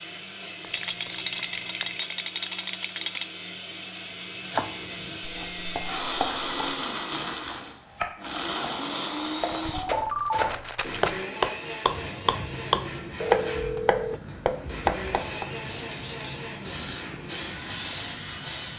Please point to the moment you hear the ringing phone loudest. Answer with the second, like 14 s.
10 s.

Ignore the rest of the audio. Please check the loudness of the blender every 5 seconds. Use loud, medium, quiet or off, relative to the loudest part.
medium, loud, medium, medium.